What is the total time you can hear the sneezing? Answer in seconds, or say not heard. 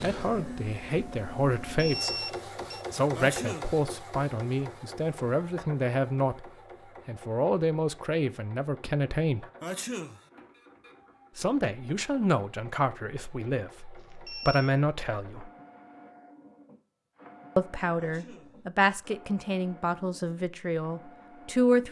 2 s.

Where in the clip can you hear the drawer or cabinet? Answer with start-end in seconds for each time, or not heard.
not heard.